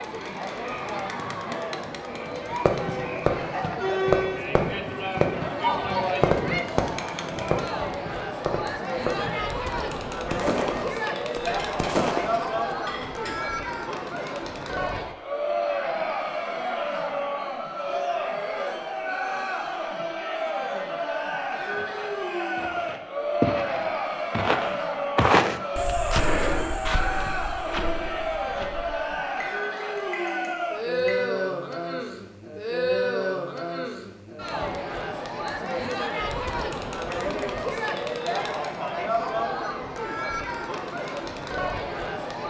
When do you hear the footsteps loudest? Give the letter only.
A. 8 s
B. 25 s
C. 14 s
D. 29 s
B.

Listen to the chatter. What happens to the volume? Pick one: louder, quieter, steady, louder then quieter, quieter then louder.
steady.